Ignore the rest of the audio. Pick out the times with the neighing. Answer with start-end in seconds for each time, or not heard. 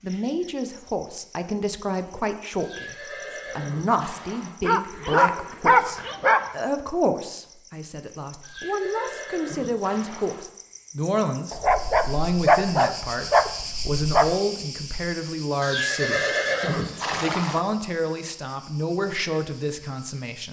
2.5-4.5, 8.4-10.4, 15.6-17.6.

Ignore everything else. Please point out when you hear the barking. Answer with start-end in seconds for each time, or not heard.
4.6-6.5, 11.5-14.3.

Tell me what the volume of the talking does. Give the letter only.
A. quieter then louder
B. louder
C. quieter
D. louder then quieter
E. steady
E.